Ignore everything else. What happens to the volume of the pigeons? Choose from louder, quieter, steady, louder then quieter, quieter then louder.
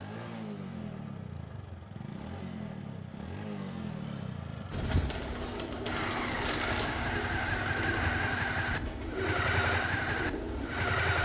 steady.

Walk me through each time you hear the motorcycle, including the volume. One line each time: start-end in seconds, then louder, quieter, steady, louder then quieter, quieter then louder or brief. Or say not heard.
0.0-11.2 louder.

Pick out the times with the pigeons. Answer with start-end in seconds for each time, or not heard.
4.7-11.0.